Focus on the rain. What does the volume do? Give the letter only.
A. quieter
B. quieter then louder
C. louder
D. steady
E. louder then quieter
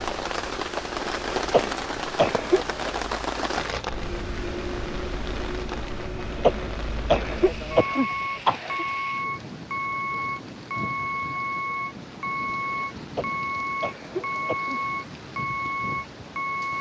A.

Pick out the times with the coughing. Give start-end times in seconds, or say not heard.
1.5-2.9, 6.4-8.8, 13.2-14.8.